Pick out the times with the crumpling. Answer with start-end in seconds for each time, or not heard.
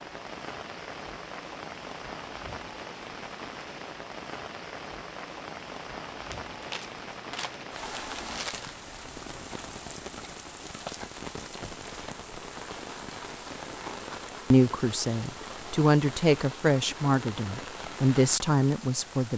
6.2-8.8.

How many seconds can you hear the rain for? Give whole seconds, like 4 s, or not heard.
19 s.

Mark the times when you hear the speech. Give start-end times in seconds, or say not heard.
14.5-19.3.